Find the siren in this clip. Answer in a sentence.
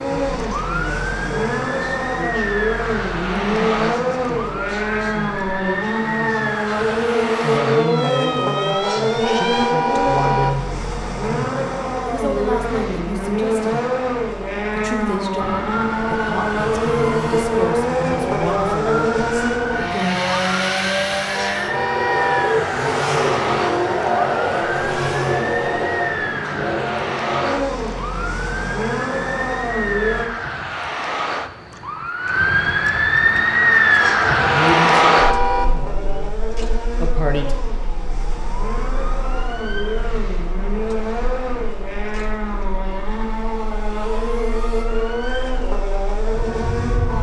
The siren can be heard from 0.0 to 9.7 s and from 15.3 to 47.1 s.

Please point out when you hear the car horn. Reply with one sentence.
You can hear the car horn from 8.8 to 10.5 s, from 21.3 to 22.6 s and from 34.0 to 35.6 s.